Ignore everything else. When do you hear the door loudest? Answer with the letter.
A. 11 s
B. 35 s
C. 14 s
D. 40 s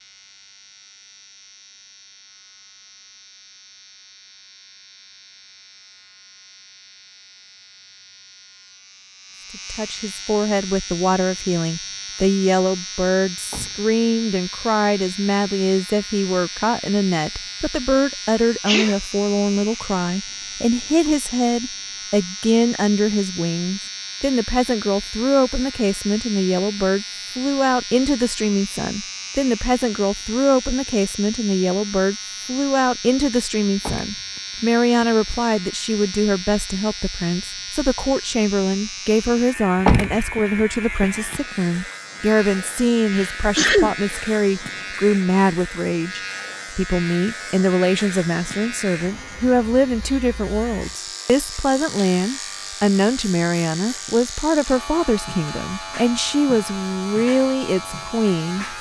D.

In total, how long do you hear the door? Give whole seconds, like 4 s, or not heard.
4 s.